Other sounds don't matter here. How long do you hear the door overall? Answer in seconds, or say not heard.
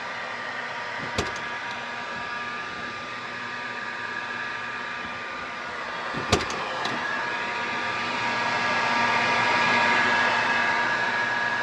2 s.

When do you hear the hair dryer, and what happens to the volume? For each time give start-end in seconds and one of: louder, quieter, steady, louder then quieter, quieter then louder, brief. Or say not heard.
0.0-11.5 louder.